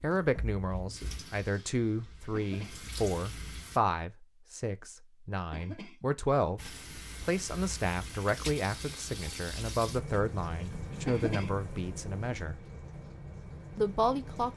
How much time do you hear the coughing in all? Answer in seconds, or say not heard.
2 s.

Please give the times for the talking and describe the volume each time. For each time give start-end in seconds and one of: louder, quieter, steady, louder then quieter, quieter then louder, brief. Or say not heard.
0.0-12.6 steady
13.8-14.5 brief.